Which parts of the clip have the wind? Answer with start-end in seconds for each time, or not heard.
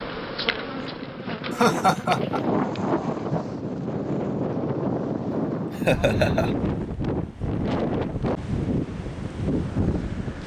0.0-10.4.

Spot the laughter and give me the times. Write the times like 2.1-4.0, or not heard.
1.5-2.4, 5.7-6.5.